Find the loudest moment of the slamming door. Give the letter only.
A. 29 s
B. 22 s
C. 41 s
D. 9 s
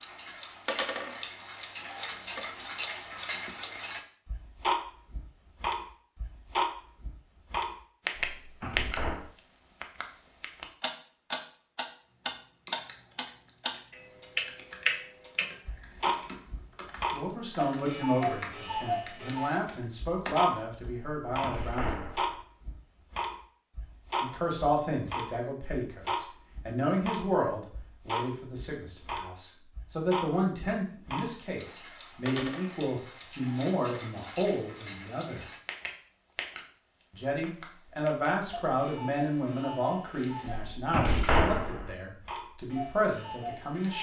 C.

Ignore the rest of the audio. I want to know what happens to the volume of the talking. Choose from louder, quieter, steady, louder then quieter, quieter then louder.
steady.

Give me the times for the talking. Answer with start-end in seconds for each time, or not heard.
17.1-22.1, 24.2-35.5, 37.1-43.9.